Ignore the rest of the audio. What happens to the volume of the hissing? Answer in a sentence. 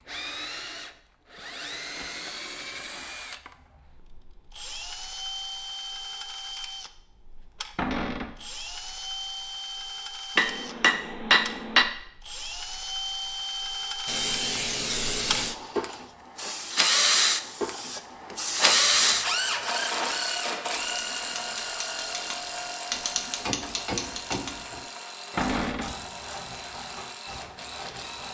The volume of the hissing goes down, then up.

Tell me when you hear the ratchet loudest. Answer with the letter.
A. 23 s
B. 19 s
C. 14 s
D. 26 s
A.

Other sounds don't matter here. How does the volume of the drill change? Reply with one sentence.
The volume of the drill goes up, then down.